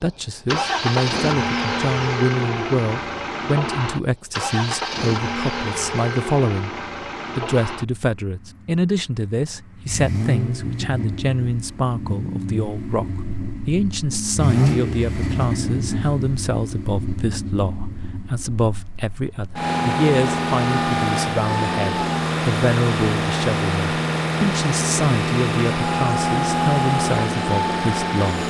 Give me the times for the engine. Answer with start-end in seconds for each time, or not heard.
0.5-28.4.